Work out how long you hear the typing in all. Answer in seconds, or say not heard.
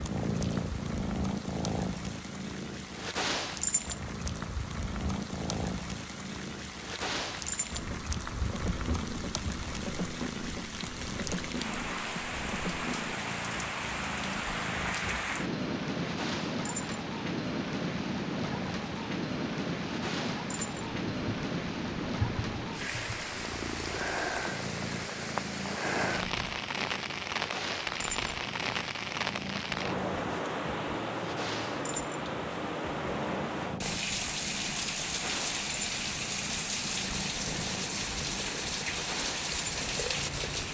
not heard.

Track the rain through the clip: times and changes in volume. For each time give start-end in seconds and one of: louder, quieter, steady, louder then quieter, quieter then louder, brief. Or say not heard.
0.0-40.7 louder.